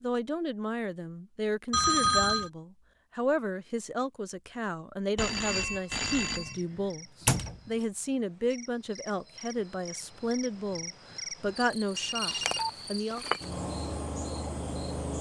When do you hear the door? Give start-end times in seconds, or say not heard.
6.5-7.6.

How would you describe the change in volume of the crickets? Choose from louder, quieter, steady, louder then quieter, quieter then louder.
louder.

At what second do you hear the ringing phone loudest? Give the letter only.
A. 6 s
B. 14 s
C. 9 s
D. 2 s
D.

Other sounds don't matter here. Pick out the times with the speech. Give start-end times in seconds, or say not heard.
0.0-13.2.